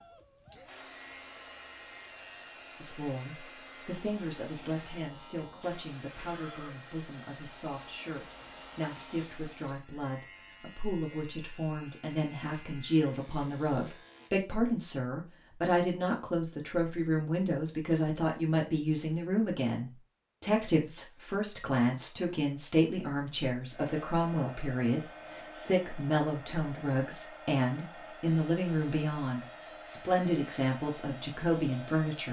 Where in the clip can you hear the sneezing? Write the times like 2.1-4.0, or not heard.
not heard.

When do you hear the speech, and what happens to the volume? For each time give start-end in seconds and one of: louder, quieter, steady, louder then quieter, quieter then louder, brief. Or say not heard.
2.8-32.2 louder.